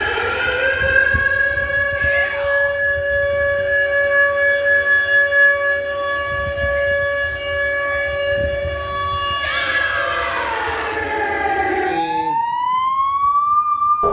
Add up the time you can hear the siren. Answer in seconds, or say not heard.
14 s.